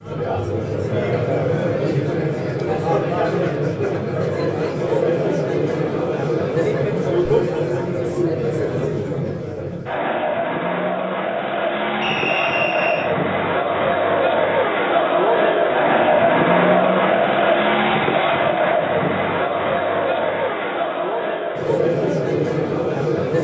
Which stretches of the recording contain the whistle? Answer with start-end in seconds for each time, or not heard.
12.0-13.1.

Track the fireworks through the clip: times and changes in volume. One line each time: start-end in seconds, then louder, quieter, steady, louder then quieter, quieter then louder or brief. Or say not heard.
not heard.